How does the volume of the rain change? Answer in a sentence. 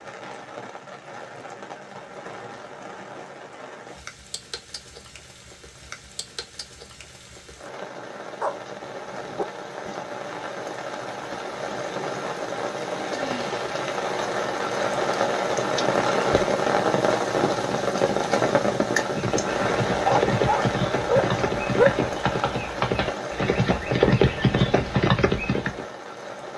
The volume of the rain goes up, then down.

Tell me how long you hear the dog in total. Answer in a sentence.
You can hear the dog for 3 seconds altogether.